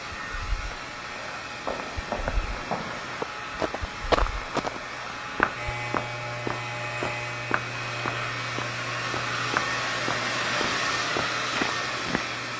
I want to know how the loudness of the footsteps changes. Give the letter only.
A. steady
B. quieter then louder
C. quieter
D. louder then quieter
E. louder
D.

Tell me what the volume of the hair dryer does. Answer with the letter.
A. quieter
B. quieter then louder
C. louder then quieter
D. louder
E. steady
D.